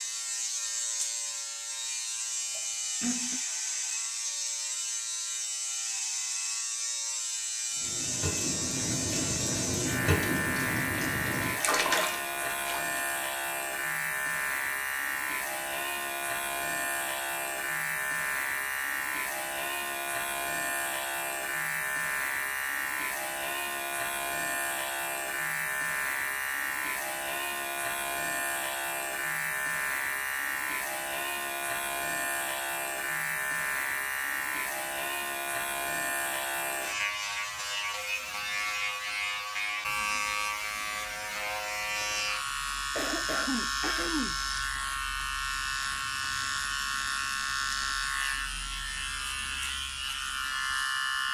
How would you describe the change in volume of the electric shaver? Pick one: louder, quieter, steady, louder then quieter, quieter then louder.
steady.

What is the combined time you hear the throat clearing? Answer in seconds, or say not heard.
3 s.